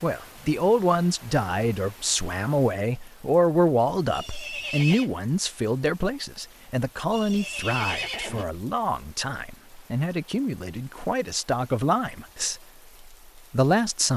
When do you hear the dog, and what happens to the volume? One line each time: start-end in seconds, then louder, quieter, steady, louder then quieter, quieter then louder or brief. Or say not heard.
not heard.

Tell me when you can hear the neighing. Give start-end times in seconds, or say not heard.
4.1-5.1, 7.1-8.4.